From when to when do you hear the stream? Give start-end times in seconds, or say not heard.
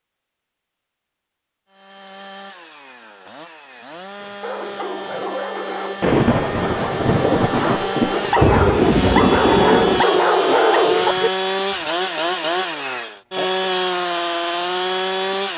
not heard.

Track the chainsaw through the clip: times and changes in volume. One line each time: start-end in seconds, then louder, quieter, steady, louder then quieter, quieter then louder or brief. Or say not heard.
1.7-15.5 louder.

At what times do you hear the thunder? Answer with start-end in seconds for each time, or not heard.
6.0-10.1.